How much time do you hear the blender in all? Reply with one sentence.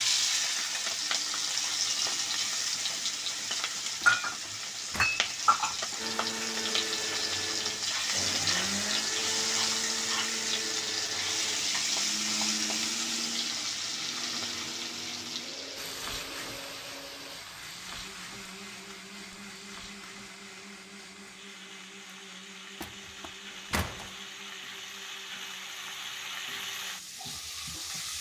You can hear the blender for 22 seconds altogether.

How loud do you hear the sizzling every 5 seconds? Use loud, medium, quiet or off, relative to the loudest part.
loud, loud, loud, quiet, quiet, medium.